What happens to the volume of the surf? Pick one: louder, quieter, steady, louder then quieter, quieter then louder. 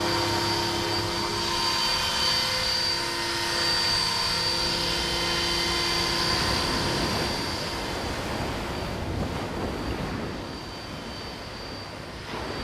louder then quieter.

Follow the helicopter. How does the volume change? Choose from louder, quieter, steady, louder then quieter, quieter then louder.
quieter.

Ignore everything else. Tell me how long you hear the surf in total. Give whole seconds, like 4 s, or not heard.
8 s.